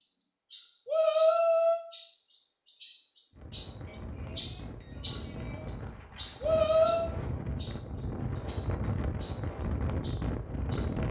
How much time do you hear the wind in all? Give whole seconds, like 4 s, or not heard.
8 s.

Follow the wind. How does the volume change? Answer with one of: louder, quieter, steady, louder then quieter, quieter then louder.
louder.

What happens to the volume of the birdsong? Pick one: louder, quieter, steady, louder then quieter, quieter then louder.
louder then quieter.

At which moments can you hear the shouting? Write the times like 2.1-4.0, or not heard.
0.8-1.8, 6.4-7.1.